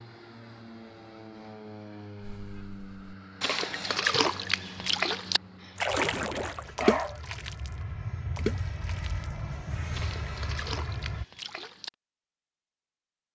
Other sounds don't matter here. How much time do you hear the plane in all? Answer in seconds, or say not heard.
11 s.